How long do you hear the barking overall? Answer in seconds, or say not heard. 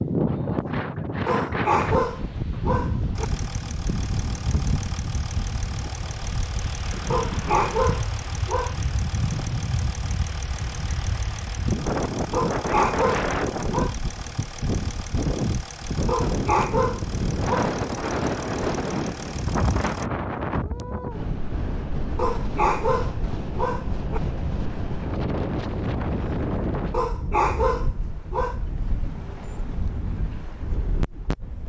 11 s.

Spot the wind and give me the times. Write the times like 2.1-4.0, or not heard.
0.0-31.6.